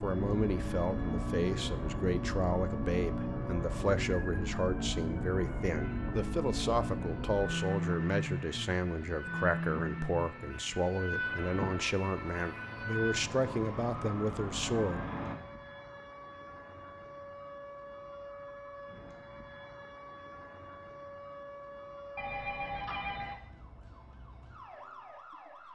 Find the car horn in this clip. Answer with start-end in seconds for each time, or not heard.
not heard.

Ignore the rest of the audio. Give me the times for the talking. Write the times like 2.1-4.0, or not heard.
0.0-15.0.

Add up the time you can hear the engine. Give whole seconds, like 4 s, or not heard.
15 s.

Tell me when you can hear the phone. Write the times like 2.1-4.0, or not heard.
22.1-23.4.